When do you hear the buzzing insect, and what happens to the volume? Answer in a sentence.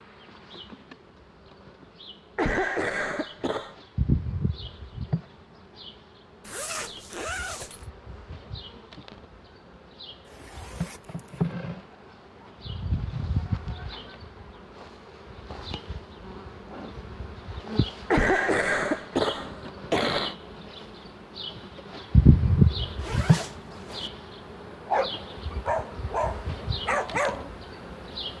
The buzzing insect can be heard from 0.0 to 28.3 s, getting quieter then louder.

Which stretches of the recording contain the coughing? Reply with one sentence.
You can hear the coughing from 2.4 to 3.8 s and from 18.1 to 20.4 s.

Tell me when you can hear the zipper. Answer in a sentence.
You can hear the zipper from 6.4 to 7.8 s, from 10.2 to 11.5 s and from 22.9 to 24.1 s.